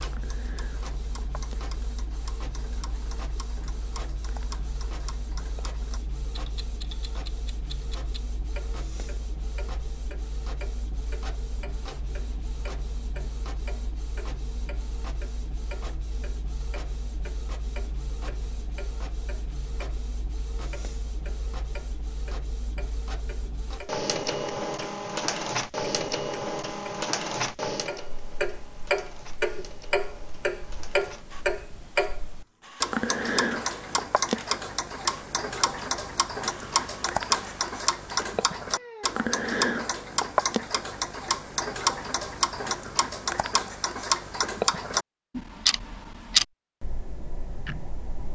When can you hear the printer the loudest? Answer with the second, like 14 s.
26 s.